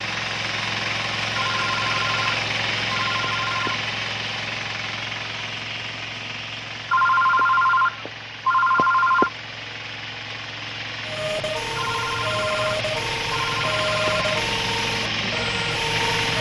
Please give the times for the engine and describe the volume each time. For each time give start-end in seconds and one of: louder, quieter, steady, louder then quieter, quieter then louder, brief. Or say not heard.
0.0-16.3 quieter then louder.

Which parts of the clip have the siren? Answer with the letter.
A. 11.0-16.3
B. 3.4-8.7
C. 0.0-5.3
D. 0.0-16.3
A.